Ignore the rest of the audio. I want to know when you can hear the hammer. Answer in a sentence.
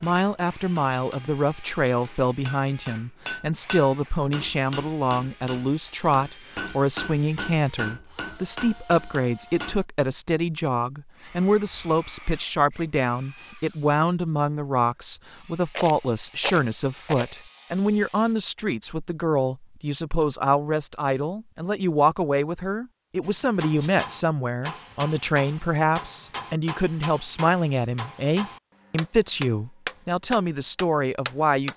The hammer can be heard from 0.0 to 9.8 s and from 23.2 to 31.7 s.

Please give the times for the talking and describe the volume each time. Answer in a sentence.
The talking can be heard from 0.0 to 31.7 s, at a steady volume.